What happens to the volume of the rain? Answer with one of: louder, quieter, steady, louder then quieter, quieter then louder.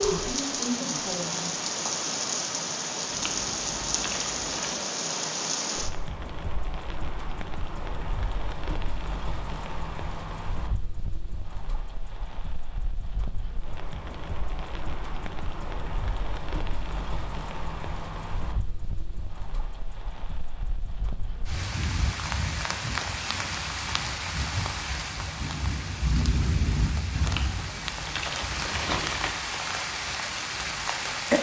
quieter then louder.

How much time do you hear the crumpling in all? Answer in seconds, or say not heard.
4 s.